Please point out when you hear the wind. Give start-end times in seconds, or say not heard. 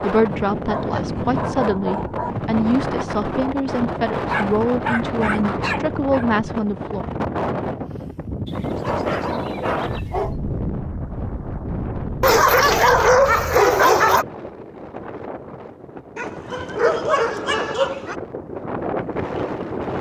0.0-19.9.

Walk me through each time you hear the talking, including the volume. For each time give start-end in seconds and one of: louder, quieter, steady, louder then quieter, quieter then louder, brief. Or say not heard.
0.0-7.1 steady.